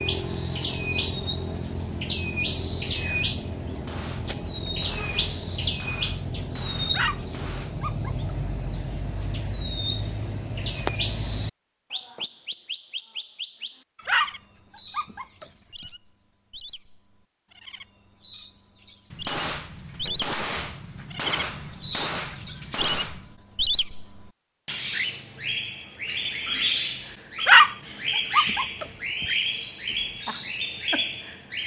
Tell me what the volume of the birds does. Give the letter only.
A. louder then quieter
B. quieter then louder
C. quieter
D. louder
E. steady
B.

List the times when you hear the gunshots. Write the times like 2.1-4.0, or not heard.
3.7-7.9, 19.1-23.4.